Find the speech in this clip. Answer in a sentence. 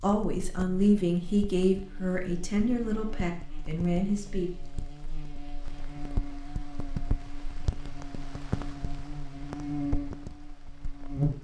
You can hear the speech from 0.0 to 4.5 s.